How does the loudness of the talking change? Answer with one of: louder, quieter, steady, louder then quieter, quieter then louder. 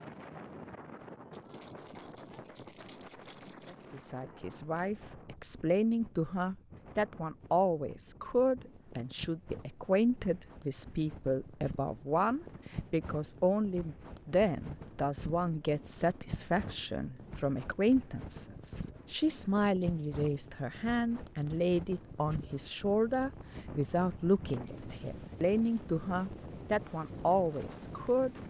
steady.